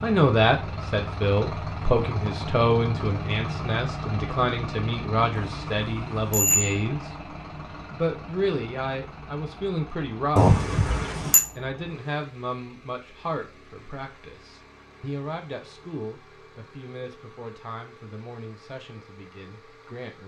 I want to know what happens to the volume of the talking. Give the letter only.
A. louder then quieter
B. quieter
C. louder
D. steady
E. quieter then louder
B.